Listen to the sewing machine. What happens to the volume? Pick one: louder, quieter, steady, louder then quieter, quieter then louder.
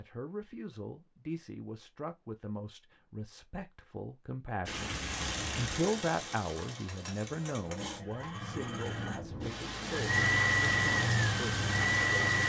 louder.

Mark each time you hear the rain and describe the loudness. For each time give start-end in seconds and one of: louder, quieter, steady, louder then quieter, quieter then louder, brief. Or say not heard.
4.7-12.4 quieter then louder.